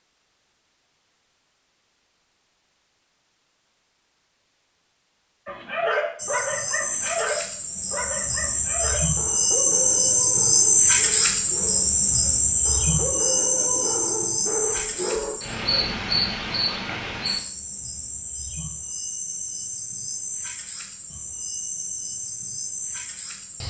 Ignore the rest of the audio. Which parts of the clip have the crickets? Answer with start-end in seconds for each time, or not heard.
6.2-23.6.